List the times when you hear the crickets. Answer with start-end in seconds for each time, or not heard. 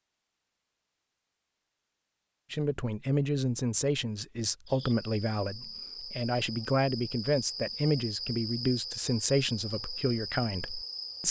4.7-11.2.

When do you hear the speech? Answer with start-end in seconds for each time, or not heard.
2.5-11.2.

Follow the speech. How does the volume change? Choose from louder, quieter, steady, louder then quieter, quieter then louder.
steady.